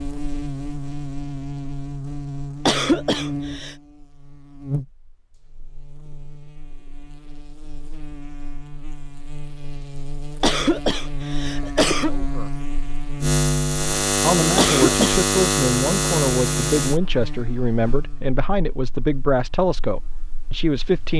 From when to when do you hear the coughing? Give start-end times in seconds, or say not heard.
2.6-3.8, 10.4-12.2, 14.6-15.2.